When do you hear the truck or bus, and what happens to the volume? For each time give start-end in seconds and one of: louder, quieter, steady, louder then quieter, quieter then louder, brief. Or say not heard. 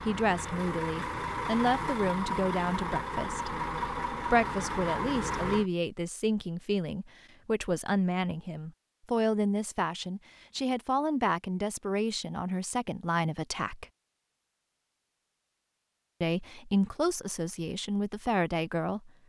0.0-5.7 steady.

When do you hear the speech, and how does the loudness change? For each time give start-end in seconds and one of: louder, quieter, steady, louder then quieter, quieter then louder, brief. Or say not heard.
0.0-13.8 steady
16.2-19.1 brief.